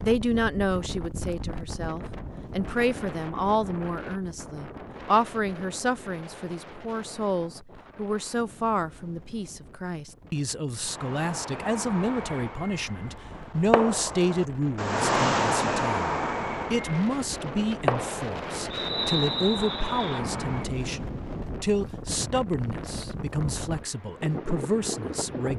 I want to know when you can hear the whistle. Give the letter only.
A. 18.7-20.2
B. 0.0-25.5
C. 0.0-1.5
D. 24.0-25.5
A.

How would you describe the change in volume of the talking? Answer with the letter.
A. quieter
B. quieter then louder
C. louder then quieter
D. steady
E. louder
D.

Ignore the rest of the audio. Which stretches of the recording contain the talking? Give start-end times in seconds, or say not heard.
0.0-25.5.